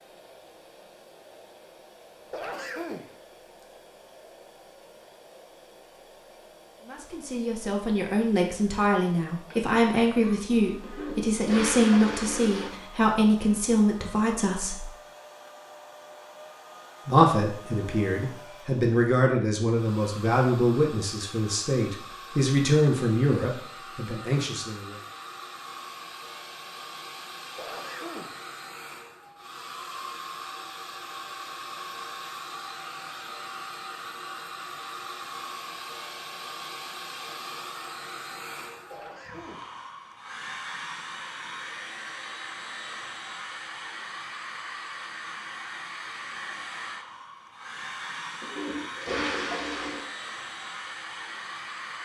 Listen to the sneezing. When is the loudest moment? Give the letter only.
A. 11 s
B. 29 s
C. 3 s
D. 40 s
C.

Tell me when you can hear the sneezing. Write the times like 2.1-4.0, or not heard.
2.3-3.1, 27.6-28.4, 38.9-39.8.